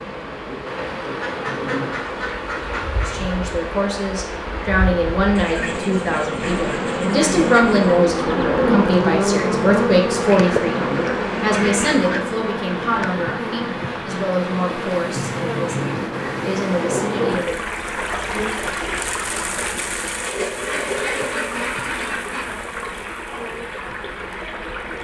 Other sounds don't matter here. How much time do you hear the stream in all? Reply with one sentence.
The stream can be heard for 25 seconds in total.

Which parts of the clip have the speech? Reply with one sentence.
The speech can be heard from 3.0 to 17.6 s.